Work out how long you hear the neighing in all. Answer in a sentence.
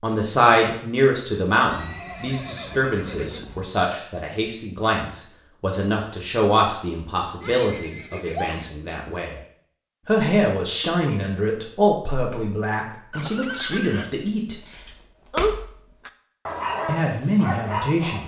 You can hear the neighing for 4 seconds altogether.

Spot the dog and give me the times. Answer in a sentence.
You can hear the dog from 14.7 to 18.2 s.